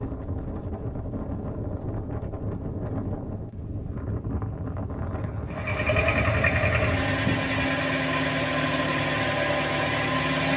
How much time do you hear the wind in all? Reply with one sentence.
You can hear the wind for 8 seconds altogether.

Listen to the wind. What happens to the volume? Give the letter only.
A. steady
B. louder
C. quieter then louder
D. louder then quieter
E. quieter
A.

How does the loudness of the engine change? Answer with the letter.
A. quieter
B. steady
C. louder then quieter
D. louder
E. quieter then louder
B.